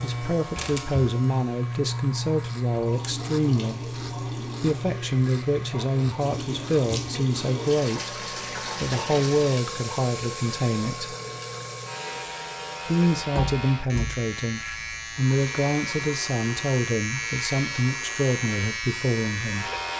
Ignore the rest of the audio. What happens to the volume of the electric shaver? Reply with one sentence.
The volume of the electric shaver goes down, then up.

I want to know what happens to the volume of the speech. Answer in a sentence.
The volume of the speech stays about the same.